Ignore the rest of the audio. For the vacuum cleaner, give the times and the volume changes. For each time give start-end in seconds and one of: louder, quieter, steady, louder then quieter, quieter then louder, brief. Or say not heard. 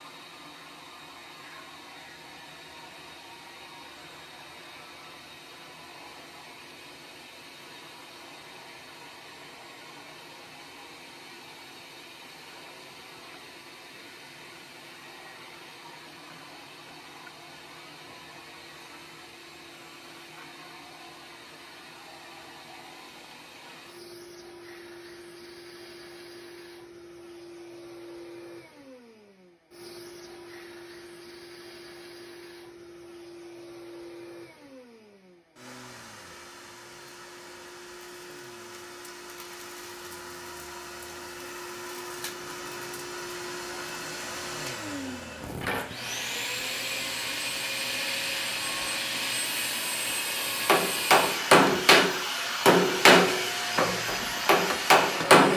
0.0-55.5 louder.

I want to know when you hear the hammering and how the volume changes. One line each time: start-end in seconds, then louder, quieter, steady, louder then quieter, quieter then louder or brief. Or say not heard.
50.6-55.5 quieter then louder.